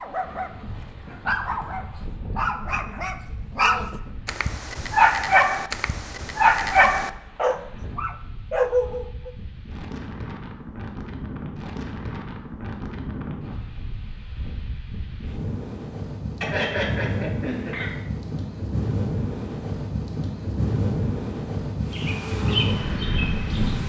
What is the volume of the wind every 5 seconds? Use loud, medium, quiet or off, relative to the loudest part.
quiet, quiet, medium, loud, loud.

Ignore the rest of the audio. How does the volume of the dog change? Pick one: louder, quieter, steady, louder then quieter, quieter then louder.
louder.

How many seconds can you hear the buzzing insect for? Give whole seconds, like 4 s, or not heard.
2 s.